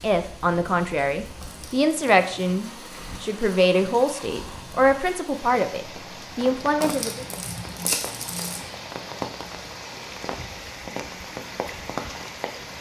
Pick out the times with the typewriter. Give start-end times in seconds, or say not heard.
not heard.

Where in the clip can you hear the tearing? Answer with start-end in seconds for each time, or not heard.
1.4-2.2, 6.8-8.7.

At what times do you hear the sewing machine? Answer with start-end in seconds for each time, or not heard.
not heard.